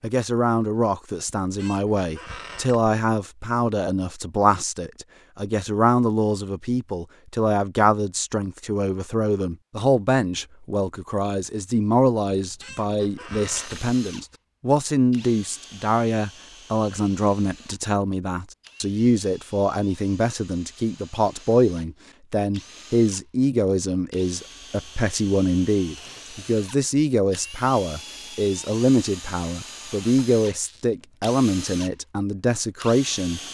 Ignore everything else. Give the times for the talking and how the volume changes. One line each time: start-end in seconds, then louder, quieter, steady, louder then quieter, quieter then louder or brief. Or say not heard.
0.0-33.4 steady.